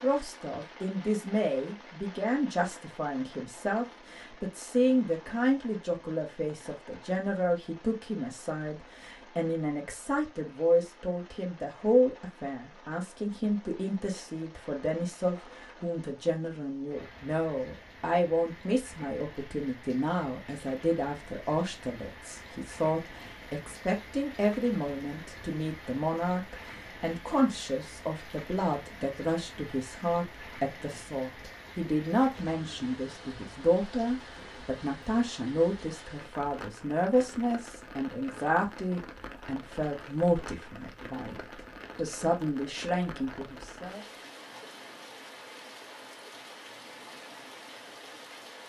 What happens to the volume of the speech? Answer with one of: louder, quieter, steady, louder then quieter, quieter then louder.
steady.